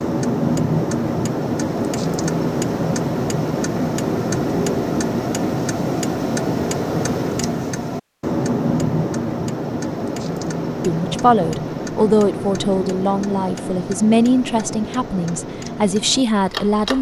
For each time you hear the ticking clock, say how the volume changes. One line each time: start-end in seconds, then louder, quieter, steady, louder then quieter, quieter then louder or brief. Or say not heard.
0.0-16.9 quieter.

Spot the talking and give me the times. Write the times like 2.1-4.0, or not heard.
10.8-16.9.